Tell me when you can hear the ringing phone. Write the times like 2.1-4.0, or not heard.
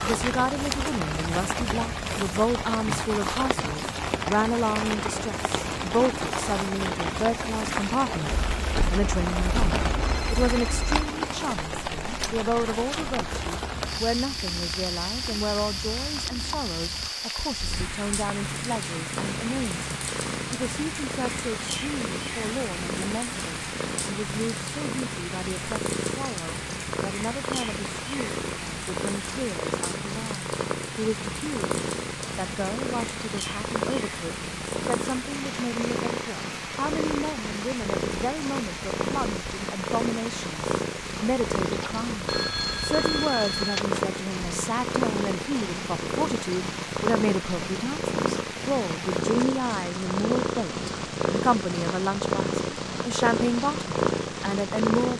8.3-11.1, 41.6-44.0.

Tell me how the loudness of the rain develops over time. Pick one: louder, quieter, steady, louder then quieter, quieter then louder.
quieter.